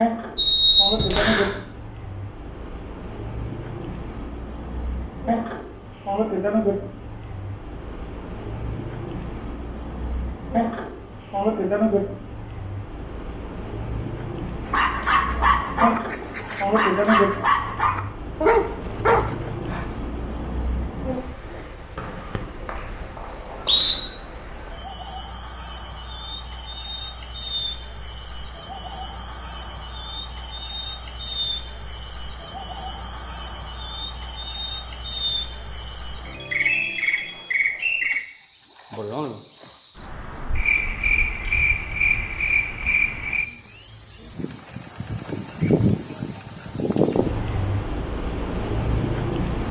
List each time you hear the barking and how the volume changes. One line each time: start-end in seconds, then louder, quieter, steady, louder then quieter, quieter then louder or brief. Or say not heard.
14.7-19.9 quieter then louder.